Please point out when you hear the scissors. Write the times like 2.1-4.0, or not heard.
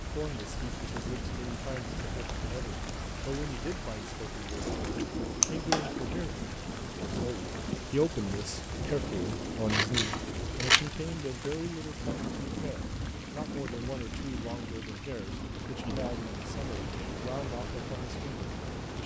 4.5-5.9, 9.7-10.9.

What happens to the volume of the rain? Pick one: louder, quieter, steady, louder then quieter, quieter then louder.
steady.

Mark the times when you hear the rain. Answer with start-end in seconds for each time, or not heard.
0.0-19.0.